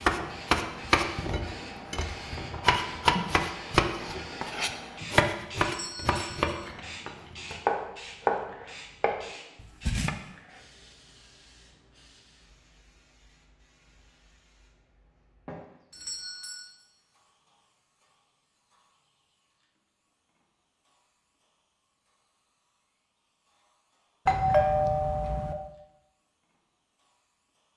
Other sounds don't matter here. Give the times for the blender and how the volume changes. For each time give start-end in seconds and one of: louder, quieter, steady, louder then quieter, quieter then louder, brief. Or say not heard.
not heard.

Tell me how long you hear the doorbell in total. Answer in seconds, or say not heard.
3 s.